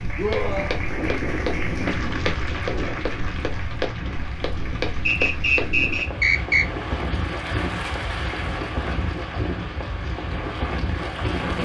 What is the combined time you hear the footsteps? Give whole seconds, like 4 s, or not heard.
6 s.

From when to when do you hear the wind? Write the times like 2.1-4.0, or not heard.
0.0-11.6.